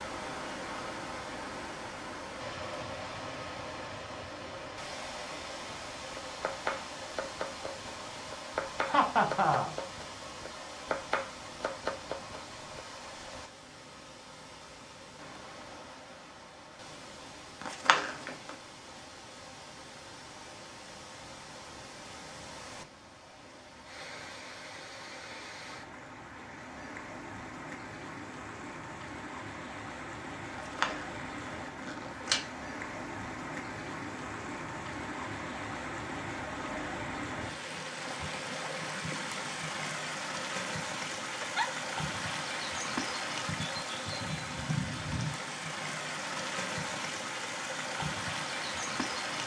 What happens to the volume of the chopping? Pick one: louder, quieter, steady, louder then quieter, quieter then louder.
steady.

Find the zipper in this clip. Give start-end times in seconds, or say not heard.
17.6-18.6, 30.5-32.4.